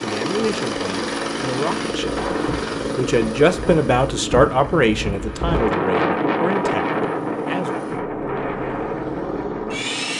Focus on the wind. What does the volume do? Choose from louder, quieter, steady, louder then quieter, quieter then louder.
louder then quieter.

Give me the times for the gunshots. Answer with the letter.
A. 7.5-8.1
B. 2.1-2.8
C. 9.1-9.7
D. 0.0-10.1
B.